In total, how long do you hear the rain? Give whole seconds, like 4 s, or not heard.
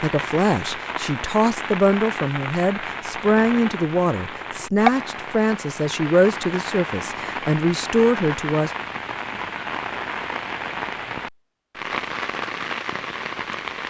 14 s.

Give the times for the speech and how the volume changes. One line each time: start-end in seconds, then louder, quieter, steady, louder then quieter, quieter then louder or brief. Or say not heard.
0.0-8.7 steady.